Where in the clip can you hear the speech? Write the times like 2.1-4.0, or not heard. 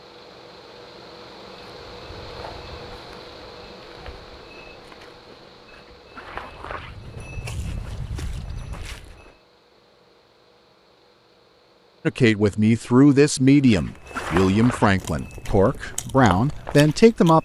12.1-17.3.